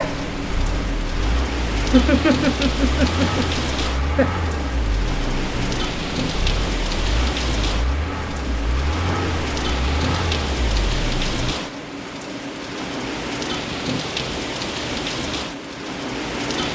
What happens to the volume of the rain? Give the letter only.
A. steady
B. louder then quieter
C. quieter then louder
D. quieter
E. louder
A.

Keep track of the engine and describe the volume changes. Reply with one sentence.
The loudness of the engine stays about the same.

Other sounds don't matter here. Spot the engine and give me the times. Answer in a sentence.
The engine can be heard from 0.0 to 11.6 s.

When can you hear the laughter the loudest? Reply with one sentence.
The volume of the laughter peaks at 2 seconds.